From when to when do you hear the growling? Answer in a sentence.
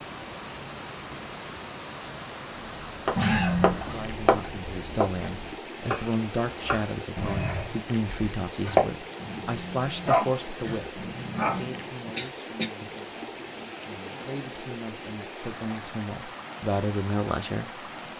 You can hear the growling from 3.1 to 3.8 s and from 9.2 to 11.8 s.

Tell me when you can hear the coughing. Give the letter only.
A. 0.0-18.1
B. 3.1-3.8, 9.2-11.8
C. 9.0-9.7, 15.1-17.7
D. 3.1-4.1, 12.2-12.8
D.